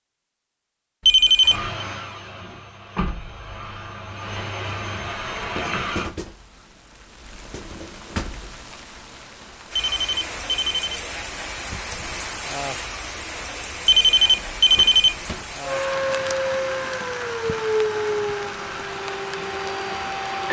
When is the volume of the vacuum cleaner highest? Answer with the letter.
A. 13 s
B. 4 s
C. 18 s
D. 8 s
C.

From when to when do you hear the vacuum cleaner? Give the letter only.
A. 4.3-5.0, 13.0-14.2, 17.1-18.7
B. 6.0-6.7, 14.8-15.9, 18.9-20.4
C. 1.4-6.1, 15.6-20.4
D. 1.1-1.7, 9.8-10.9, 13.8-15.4
C.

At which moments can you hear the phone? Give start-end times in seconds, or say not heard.
1.1-1.7, 9.8-10.9, 13.8-15.4.